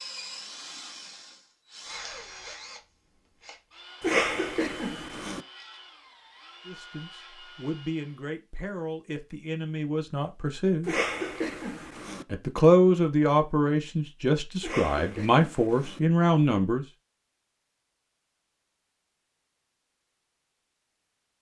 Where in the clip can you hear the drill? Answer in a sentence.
The drill can be heard from 0.0 to 8.2 s.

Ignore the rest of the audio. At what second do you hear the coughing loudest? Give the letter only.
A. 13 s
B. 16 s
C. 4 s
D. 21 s
C.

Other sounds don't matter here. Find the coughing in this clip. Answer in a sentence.
You can hear the coughing from 4.0 to 5.5 s, from 10.8 to 12.2 s and from 14.6 to 16.0 s.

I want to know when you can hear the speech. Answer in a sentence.
You can hear the speech from 6.7 to 10.9 s and from 12.3 to 16.9 s.